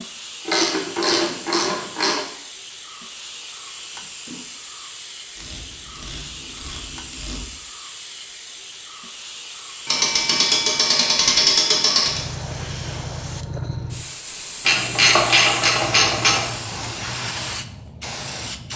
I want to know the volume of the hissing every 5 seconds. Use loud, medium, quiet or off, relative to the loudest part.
medium, medium, loud, loud.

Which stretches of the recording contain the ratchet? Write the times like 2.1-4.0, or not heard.
0.5-2.2, 5.3-7.5, 9.8-12.2, 14.7-16.4.